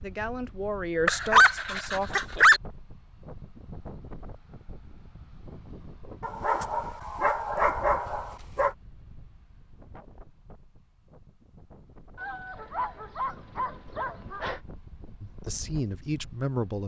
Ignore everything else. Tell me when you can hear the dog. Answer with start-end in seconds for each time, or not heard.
1.1-2.6, 6.2-8.7, 12.2-14.6.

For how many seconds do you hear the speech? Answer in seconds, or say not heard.
4 s.